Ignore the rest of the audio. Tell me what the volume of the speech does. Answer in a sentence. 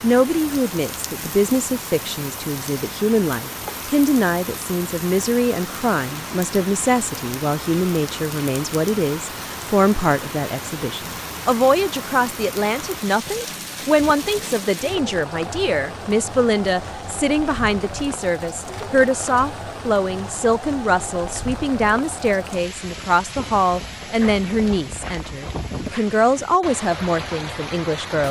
The volume of the speech stays about the same.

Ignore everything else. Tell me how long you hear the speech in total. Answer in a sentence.
The speech can be heard for 28 seconds in total.